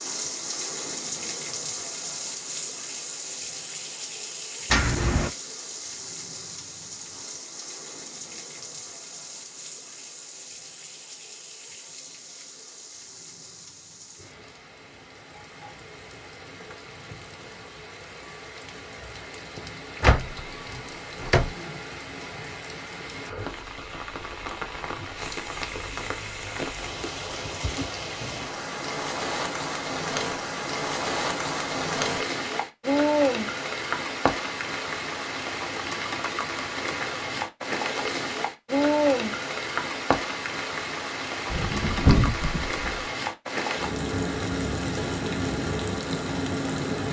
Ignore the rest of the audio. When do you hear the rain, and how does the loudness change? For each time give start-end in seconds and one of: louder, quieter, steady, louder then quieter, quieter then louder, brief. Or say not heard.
0.0-47.0 quieter then louder.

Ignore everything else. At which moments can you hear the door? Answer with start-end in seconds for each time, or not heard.
4.7-5.3, 20.0-21.5, 41.5-43.0.